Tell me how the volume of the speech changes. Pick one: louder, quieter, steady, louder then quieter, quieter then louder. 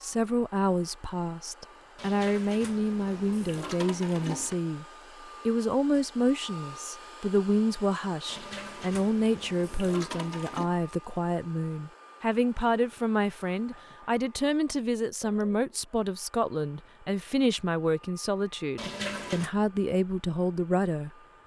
steady.